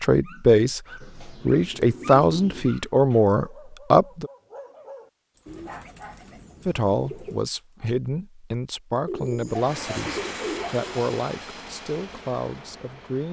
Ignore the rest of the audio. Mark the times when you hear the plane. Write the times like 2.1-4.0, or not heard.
9.4-13.2.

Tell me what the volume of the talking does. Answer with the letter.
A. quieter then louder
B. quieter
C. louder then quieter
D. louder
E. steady
B.